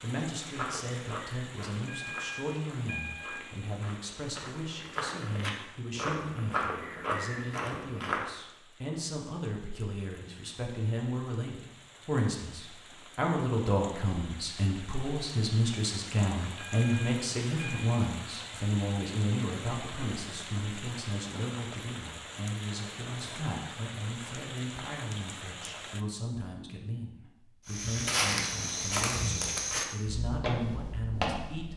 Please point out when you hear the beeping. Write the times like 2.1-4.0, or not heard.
1.9-3.5, 16.6-17.9.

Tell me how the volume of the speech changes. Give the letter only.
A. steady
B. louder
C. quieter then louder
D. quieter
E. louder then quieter
E.